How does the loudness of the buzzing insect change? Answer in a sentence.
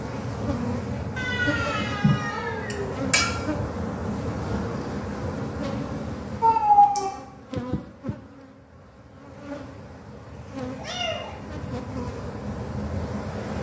The volume of the buzzing insect goes down, then up.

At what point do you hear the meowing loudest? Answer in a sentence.
The volume of the meowing peaks at 7 seconds.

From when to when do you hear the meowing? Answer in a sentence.
You can hear the meowing from 1.1 to 3.0 s, from 6.4 to 7.1 s and from 10.3 to 11.3 s.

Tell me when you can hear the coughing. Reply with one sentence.
You can hear the coughing from 2.7 to 3.3 s.